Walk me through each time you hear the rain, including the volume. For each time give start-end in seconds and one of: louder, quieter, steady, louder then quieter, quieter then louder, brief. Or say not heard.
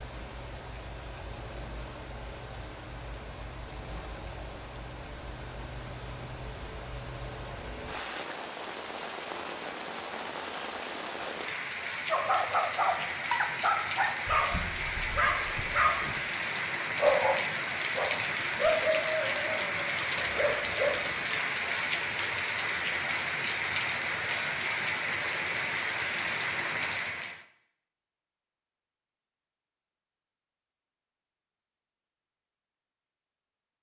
0.0-27.4 louder.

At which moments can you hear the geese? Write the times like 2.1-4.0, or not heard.
not heard.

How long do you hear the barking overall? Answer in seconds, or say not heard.
9 s.